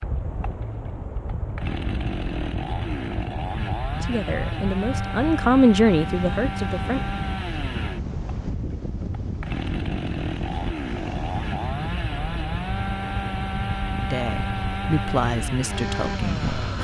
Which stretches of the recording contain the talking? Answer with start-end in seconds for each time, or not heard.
4.0-7.0, 14.0-16.7.